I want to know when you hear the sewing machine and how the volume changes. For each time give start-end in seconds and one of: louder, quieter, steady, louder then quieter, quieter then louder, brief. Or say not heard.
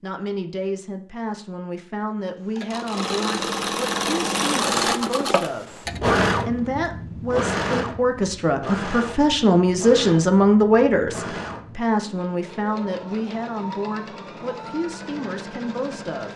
2.5-16.3 quieter.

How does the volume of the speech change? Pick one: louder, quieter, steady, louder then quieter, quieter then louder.
louder then quieter.